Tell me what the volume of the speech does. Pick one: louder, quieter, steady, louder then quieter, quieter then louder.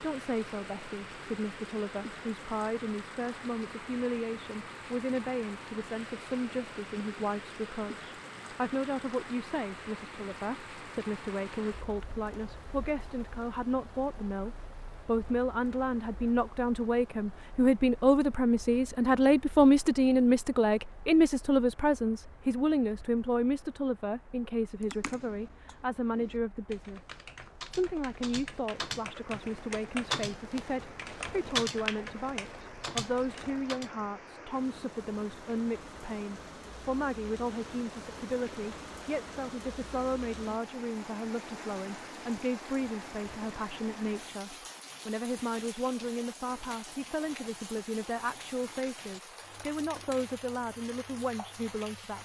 louder then quieter.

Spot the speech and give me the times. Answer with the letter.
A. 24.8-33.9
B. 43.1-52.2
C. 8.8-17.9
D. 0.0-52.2
D.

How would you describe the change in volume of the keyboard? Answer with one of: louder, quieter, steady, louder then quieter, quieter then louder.
louder.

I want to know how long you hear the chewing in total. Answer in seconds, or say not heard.
not heard.